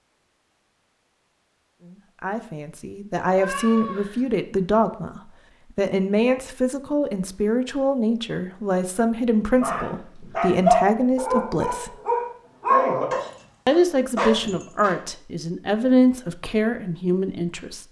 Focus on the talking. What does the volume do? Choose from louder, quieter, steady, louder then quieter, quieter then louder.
steady.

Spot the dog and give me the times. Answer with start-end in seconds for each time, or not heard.
9.3-14.9.